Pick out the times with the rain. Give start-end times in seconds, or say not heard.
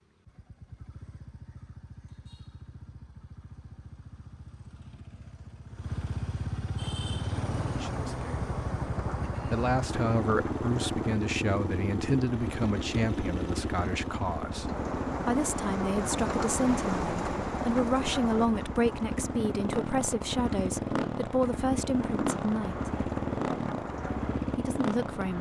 6.8-25.3.